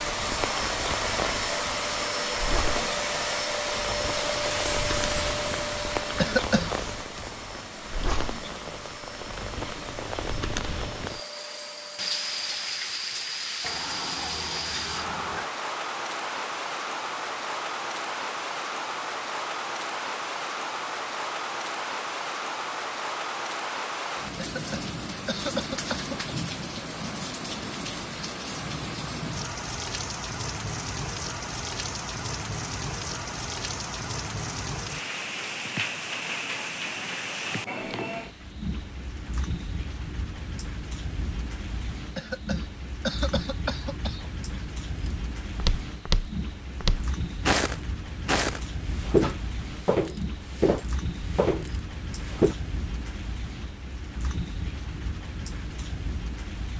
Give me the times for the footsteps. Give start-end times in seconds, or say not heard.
45.0-52.5.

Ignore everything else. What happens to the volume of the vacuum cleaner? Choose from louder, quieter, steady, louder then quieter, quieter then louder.
quieter.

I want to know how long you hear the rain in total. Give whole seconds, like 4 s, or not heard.
57 s.